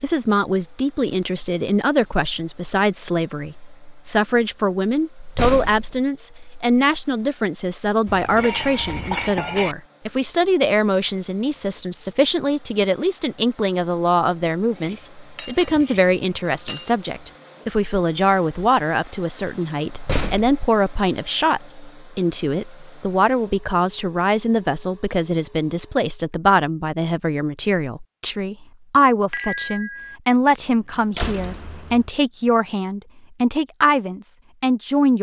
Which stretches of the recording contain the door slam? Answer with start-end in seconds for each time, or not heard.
5.2-6.0, 19.9-20.5, 30.6-32.1.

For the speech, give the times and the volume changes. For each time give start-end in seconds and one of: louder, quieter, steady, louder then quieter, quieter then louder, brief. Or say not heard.
0.0-35.1 steady.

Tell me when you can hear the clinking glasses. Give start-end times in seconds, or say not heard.
8.1-9.8, 14.7-16.9, 29.3-30.1.